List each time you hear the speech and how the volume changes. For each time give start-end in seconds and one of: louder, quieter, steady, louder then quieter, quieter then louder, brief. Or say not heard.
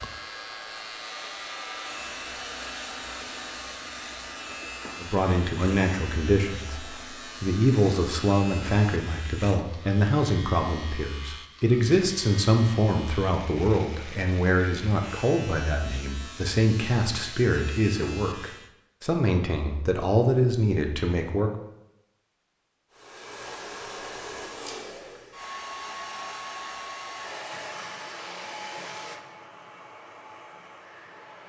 5.0-21.5 steady.